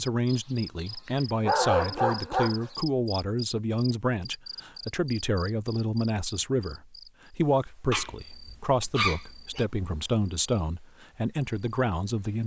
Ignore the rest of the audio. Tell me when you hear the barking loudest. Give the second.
2 s.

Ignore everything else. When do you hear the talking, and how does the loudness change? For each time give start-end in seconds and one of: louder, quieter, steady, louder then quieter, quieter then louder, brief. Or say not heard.
0.0-12.4 steady.